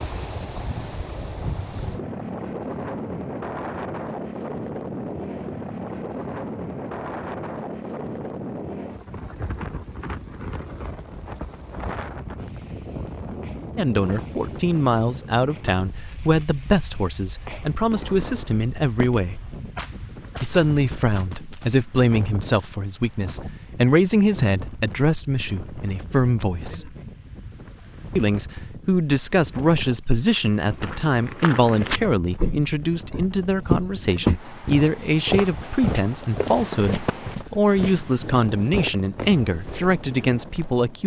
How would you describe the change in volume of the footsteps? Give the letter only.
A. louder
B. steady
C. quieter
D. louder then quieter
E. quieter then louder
D.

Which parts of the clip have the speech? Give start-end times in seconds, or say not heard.
13.8-19.4, 20.4-26.9, 28.1-41.0.